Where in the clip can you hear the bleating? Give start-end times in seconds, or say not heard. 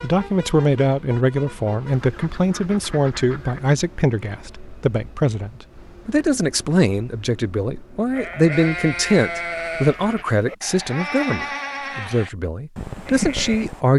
8.1-13.8.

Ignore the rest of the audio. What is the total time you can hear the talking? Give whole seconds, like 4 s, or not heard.
14 s.